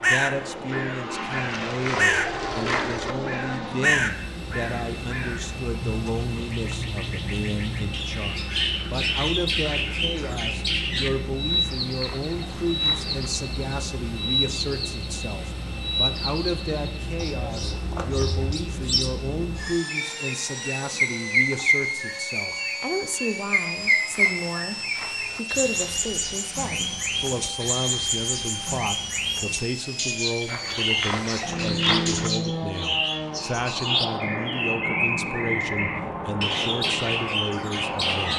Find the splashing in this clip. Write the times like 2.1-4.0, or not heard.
1.3-3.1, 11.4-13.3, 23.6-25.4, 30.4-32.3.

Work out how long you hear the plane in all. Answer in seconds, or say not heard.
38 s.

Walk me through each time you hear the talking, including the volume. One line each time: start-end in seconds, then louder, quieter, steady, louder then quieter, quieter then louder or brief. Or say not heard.
0.0-38.3 steady.